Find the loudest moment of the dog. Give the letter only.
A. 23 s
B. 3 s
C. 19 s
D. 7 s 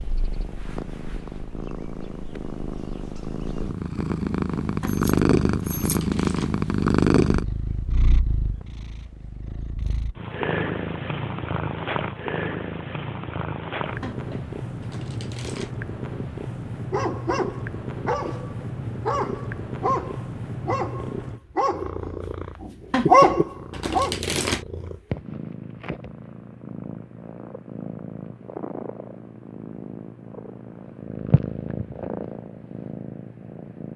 A.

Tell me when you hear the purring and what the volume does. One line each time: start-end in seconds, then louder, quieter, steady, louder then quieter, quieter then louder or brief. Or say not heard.
0.0-33.9 quieter.